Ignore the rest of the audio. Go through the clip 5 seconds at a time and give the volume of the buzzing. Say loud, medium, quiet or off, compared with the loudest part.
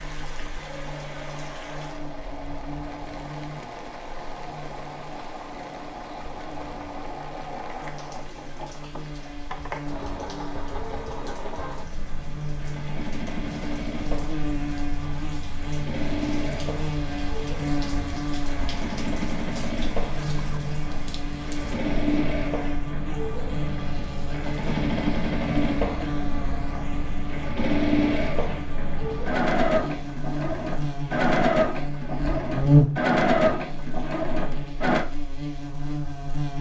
quiet, quiet, medium, medium, medium, medium, loud, medium.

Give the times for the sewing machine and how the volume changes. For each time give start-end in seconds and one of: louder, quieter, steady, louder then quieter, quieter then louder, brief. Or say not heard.
0.0-35.0 louder.